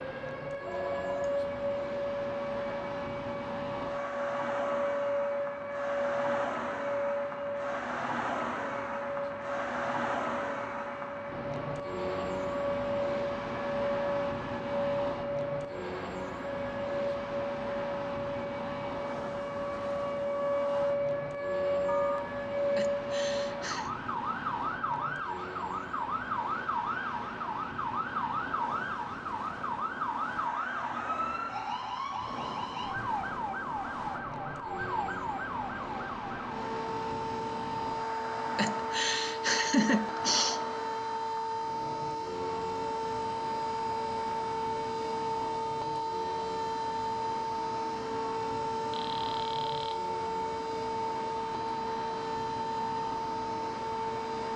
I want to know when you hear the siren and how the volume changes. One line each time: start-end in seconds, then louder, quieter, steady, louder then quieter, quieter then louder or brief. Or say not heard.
0.0-54.5 steady.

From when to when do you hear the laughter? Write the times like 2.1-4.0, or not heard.
22.7-23.9, 38.5-40.6.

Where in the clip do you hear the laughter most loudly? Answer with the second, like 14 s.
40 s.